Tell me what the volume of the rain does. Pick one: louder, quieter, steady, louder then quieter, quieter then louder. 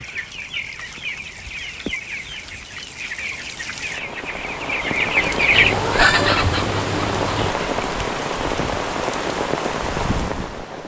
louder.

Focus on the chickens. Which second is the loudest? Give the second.
6 s.